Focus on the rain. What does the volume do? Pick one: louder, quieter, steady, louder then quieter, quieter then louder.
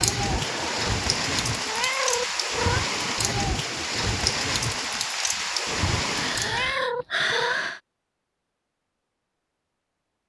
steady.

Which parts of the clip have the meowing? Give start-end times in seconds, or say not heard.
0.9-2.9, 5.7-7.7.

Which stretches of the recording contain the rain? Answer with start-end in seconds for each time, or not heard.
0.0-6.8.